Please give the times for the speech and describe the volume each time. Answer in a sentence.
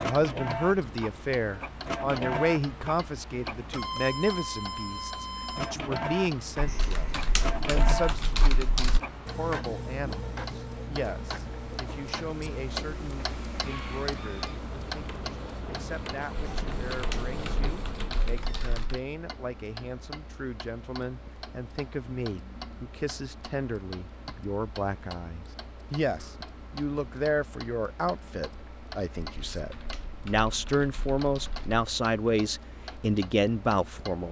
The speech can be heard from 0.0 to 34.2 s, getting quieter then louder.